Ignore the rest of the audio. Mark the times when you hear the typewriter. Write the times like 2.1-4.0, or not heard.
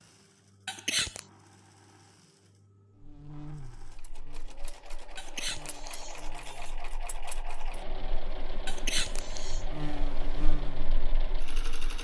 not heard.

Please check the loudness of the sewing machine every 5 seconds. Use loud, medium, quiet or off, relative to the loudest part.
quiet, loud, loud.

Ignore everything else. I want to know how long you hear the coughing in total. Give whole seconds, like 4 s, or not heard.
3 s.